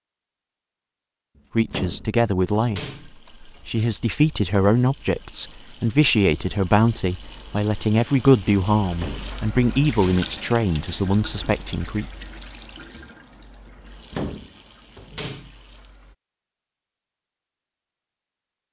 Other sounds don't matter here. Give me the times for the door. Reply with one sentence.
You can hear the door from 1.4 to 3.1 s, from 8.9 to 10.2 s and from 14.1 to 15.5 s.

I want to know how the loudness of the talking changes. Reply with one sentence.
The loudness of the talking stays about the same.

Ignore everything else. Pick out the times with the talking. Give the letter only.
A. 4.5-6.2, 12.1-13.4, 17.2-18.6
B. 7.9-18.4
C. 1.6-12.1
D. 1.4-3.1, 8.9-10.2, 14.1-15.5
C.